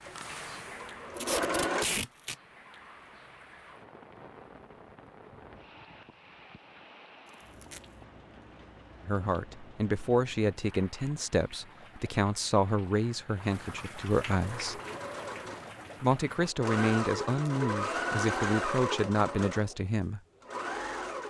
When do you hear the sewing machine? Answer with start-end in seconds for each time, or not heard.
0.0-1.9, 14.4-21.2.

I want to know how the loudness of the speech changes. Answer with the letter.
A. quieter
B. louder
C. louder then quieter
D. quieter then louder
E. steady
E.